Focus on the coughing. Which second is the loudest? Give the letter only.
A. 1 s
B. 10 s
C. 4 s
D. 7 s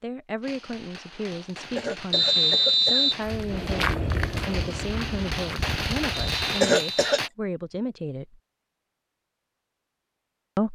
D.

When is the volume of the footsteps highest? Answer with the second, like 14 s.
4 s.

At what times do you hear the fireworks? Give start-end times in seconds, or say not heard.
0.4-7.3.